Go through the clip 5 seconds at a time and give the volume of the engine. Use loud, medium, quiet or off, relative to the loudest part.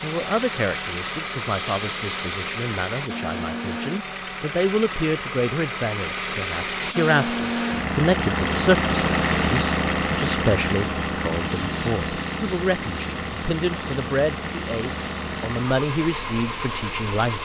medium, loud, loud, medium.